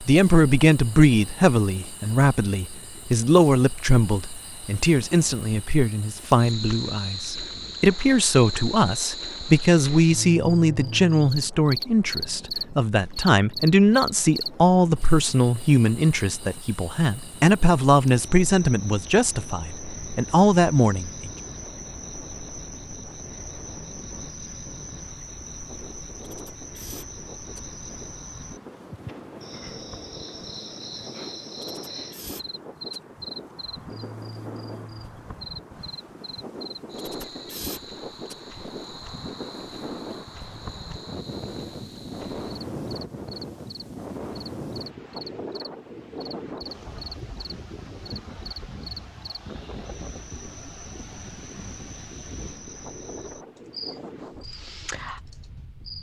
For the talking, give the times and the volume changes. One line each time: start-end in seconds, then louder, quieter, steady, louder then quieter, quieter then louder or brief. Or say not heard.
0.0-21.3 steady.